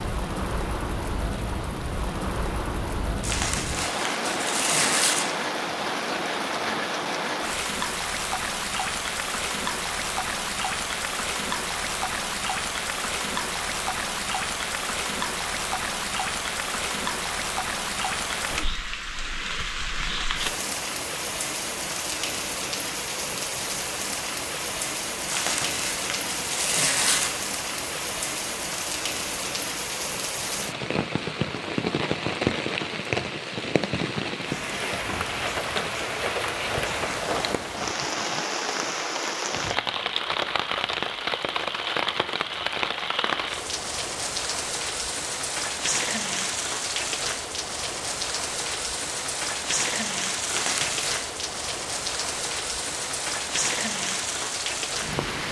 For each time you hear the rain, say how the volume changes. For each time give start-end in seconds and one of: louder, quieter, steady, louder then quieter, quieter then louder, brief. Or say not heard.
0.0-55.4 steady.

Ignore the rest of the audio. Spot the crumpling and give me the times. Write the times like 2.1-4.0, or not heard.
3.2-5.2, 25.2-27.3, 50.5-51.2.